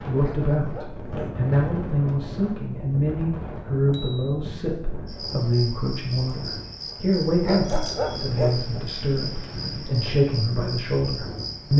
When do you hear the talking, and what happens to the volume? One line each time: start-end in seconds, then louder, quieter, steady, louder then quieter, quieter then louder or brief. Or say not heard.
0.0-11.7 steady.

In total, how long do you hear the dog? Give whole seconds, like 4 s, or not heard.
3 s.